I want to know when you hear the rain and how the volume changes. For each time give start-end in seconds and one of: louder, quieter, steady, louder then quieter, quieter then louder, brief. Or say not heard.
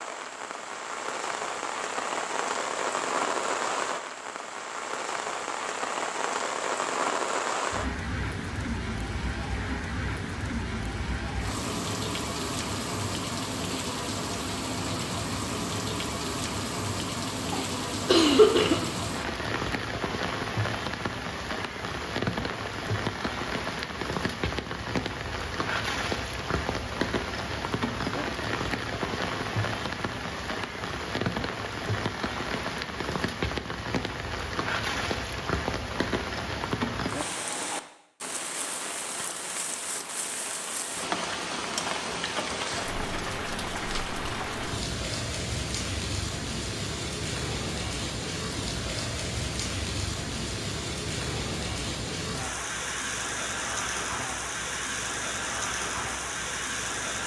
0.0-57.2 steady.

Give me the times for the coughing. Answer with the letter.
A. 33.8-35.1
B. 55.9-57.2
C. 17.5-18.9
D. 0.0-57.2
C.